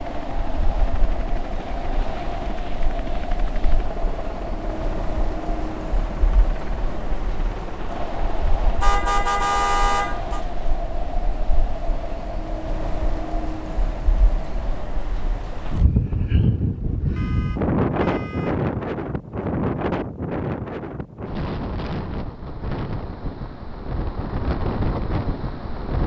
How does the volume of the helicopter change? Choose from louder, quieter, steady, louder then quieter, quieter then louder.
steady.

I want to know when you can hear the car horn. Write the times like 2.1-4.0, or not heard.
8.8-10.4, 17.1-18.6.